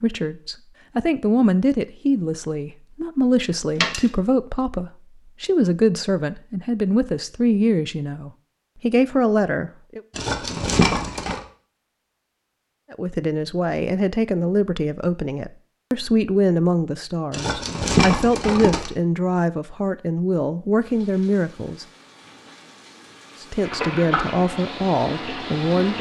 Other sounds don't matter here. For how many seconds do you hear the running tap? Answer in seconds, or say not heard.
5 s.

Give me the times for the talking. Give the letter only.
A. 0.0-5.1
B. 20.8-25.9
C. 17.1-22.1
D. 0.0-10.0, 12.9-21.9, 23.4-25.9
D.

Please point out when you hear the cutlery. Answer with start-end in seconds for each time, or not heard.
not heard.